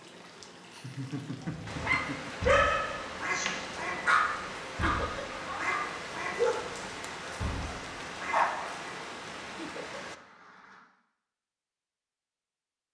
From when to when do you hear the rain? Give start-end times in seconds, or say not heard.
0.0-10.2.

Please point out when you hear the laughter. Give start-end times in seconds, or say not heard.
0.7-2.4, 4.8-5.2, 9.6-10.1.